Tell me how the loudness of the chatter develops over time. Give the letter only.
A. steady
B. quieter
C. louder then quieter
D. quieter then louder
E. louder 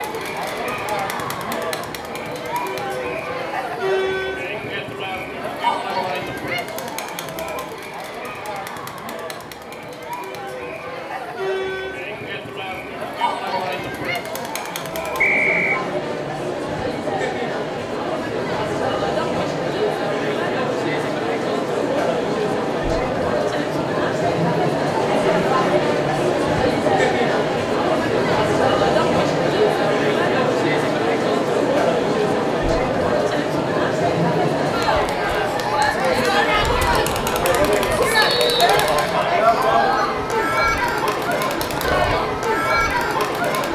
E.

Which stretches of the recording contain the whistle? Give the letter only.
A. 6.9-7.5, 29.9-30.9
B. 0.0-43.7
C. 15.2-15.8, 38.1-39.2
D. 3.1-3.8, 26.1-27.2
C.